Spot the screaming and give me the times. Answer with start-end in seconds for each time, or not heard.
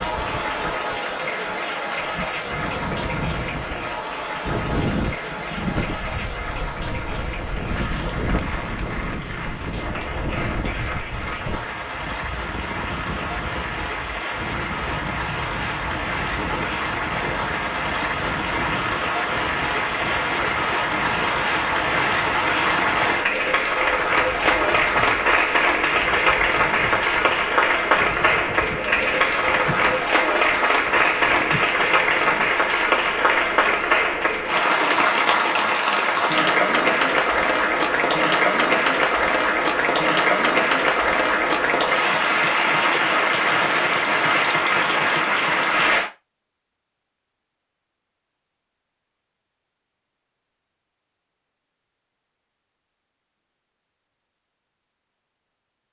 not heard.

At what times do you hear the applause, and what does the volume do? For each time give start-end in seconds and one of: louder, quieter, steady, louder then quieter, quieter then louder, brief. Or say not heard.
0.0-46.1 louder.